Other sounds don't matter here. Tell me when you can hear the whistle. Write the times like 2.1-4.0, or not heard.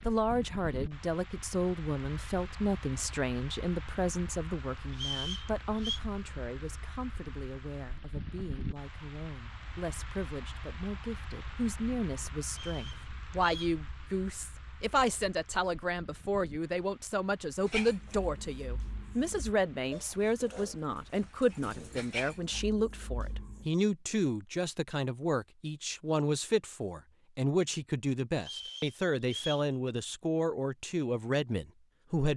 4.9-6.0, 12.5-13.8, 28.4-29.7.